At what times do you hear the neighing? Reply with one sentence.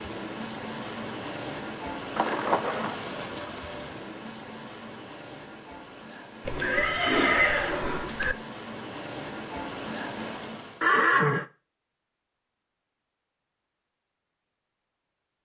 The neighing can be heard from 2.1 to 3.0 s, from 6.5 to 8.3 s and from 10.8 to 11.4 s.